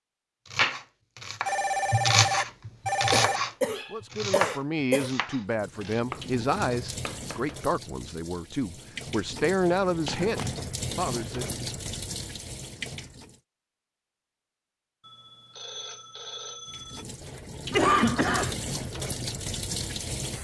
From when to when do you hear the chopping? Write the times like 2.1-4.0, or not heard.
0.5-7.6.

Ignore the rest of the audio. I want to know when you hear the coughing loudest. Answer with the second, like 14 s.
18 s.